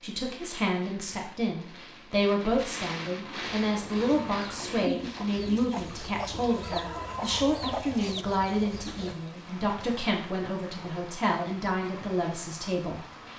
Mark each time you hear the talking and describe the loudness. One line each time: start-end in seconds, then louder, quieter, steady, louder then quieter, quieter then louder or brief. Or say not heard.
0.0-13.1 steady.